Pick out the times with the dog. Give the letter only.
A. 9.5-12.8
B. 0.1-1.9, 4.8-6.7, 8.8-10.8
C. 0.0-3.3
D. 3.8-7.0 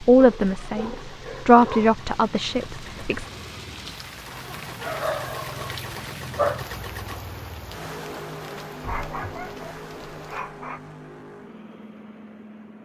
B.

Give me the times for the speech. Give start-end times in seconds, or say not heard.
0.0-3.3.